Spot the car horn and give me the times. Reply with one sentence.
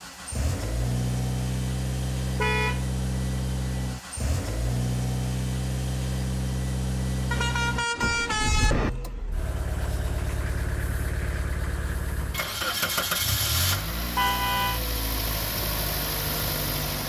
You can hear the car horn from 2.4 to 2.9 s, from 7.3 to 8.9 s and from 14.2 to 14.8 s.